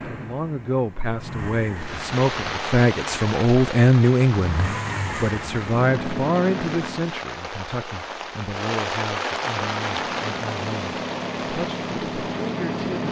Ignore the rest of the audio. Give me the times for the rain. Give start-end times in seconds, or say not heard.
1.8-13.0.